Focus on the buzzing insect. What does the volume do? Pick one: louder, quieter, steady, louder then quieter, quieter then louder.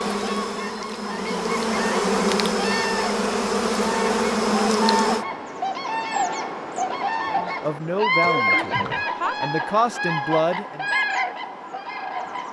louder.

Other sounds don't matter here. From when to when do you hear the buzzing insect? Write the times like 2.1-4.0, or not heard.
0.0-5.2.